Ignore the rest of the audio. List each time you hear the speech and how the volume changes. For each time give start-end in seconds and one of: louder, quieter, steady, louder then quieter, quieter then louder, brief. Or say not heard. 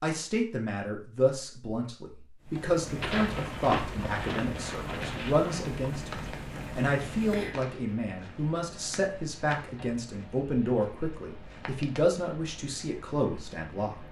0.0-14.0 steady.